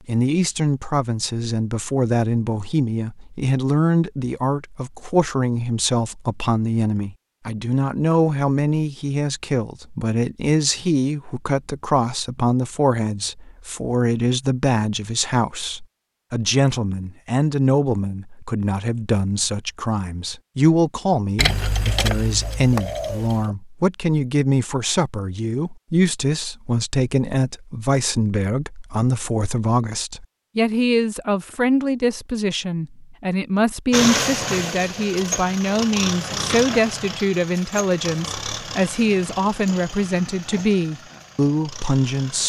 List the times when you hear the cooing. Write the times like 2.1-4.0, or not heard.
21.4-23.6.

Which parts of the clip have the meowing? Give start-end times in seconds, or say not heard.
not heard.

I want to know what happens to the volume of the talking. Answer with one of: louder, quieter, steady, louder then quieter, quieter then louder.
steady.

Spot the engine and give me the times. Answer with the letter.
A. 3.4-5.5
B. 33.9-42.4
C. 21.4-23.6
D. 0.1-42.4
B.